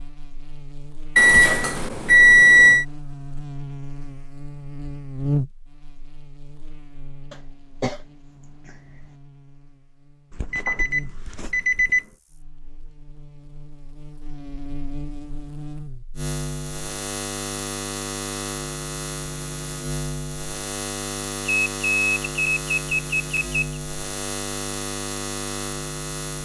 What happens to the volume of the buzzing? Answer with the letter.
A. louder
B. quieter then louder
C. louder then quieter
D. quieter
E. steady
B.